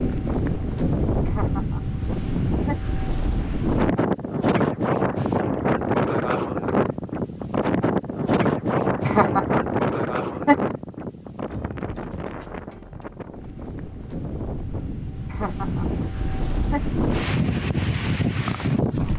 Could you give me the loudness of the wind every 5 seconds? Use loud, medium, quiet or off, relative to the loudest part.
loud, loud, medium, loud.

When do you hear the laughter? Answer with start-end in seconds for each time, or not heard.
1.2-3.0, 9.1-10.8, 15.2-15.8, 16.6-17.0.